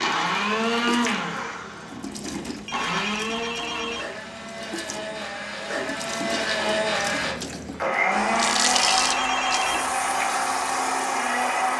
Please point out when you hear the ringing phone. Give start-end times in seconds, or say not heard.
2.0-4.0, 8.2-9.8.